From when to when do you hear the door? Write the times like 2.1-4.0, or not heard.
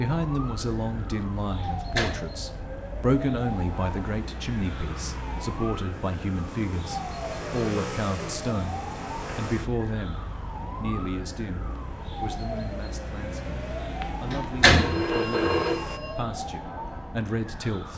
1.6-2.4, 14.1-15.0.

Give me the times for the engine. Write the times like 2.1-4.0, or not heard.
0.2-16.0.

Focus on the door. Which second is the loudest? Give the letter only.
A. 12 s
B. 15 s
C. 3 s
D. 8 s
B.